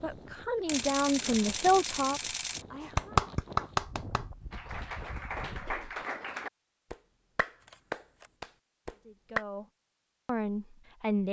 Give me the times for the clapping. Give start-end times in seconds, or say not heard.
3.0-9.4.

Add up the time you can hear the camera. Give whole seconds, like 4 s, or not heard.
3 s.